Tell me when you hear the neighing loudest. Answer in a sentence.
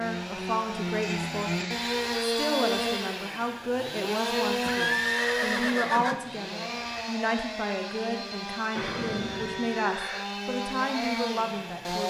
The volume of the neighing peaks at 5 seconds.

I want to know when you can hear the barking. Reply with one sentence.
You can't hear the barking here.